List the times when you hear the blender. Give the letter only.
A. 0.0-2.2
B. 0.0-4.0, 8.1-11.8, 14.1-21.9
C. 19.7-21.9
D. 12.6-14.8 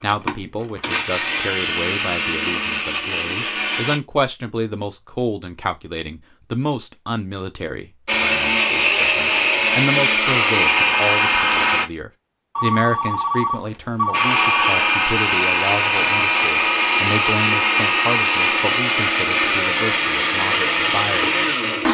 B.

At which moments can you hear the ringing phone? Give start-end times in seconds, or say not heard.
12.6-14.8.